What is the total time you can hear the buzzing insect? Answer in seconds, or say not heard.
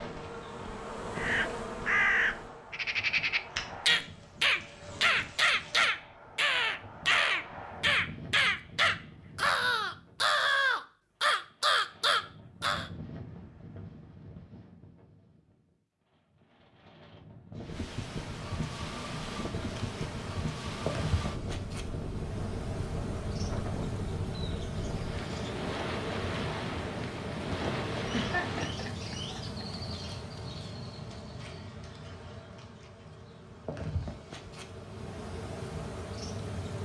23 s.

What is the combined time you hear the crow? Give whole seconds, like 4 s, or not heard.
12 s.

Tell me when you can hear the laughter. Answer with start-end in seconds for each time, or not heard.
28.1-29.6.